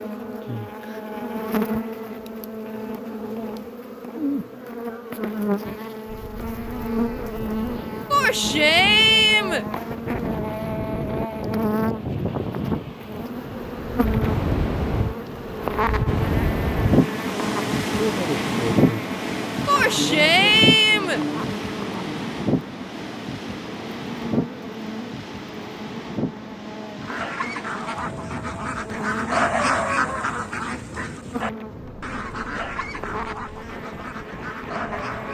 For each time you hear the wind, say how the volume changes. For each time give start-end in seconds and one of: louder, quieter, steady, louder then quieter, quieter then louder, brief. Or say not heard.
6.0-35.2 louder then quieter.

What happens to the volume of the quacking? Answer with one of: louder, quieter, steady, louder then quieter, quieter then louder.
louder then quieter.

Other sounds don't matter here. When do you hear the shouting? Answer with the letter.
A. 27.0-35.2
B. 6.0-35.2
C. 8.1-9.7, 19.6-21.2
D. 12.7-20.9
C.